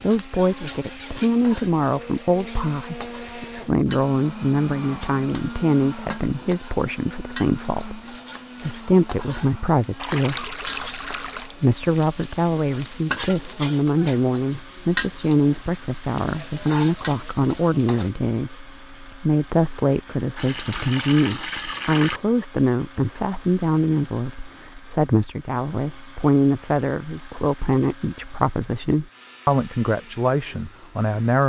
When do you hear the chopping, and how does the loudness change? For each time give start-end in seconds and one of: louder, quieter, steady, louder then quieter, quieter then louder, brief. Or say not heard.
not heard.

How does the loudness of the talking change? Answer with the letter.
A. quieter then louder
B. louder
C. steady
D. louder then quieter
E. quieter
C.